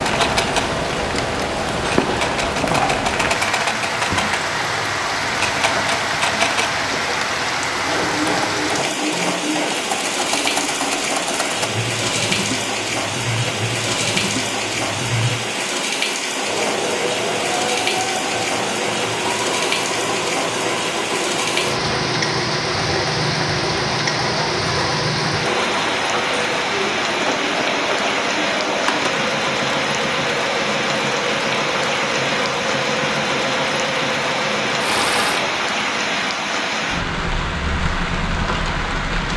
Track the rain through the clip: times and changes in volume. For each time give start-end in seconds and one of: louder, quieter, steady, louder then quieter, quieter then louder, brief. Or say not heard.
0.0-39.3 steady.